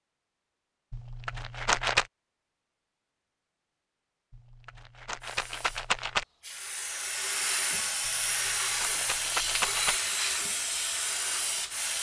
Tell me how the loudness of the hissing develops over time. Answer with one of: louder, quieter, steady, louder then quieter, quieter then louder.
louder.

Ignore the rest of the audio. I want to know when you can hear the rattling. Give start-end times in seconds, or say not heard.
0.9-2.0, 4.3-6.2, 8.1-9.9.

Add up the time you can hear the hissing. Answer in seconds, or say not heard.
7 s.